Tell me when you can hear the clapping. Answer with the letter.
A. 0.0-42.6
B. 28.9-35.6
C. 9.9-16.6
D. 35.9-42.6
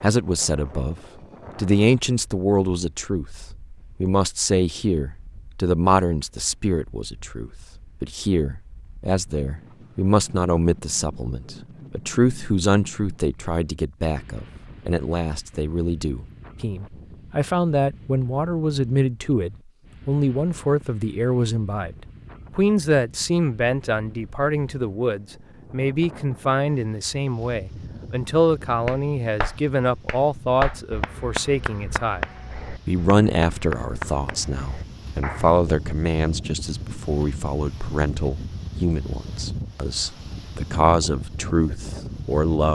B.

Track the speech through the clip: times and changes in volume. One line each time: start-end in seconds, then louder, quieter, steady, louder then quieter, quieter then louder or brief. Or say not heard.
0.0-42.6 steady.